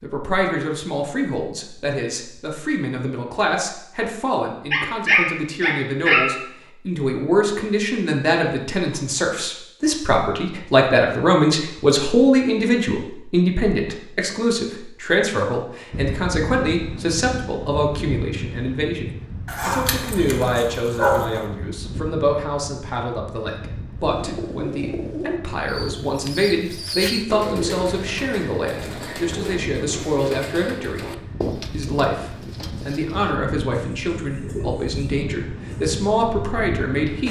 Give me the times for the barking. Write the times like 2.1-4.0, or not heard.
4.7-6.3, 19.4-21.4.